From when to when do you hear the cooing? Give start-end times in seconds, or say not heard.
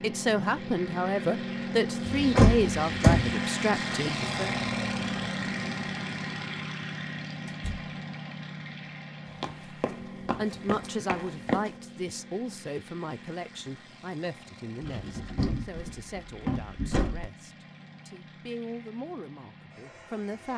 not heard.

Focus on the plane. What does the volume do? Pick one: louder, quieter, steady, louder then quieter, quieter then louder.
quieter.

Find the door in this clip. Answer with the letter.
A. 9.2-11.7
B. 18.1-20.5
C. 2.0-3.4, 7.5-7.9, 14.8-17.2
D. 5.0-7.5
C.